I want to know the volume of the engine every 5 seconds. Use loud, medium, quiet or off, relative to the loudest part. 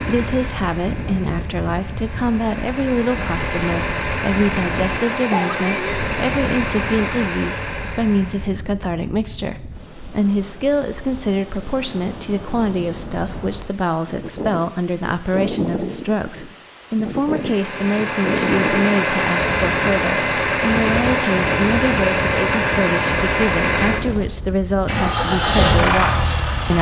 medium, medium, off, loud, loud, loud.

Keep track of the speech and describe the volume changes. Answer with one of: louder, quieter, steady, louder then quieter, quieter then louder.
steady.